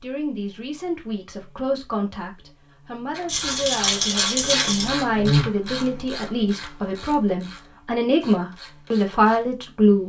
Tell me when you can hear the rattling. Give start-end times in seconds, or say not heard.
3.2-4.9.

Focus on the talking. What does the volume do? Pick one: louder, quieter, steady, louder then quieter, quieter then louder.
louder.